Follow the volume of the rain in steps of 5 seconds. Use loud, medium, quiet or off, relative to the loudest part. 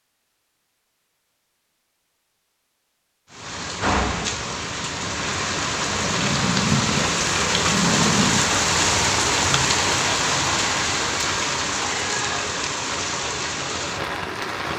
medium, loud, loud.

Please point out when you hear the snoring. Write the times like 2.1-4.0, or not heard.
5.8-8.5.